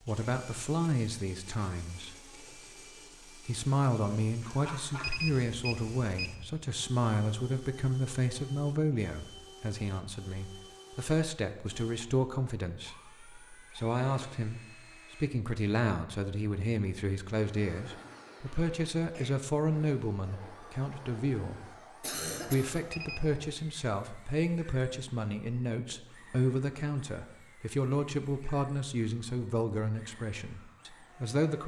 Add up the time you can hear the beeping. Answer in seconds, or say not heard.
2 s.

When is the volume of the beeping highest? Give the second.
5 s.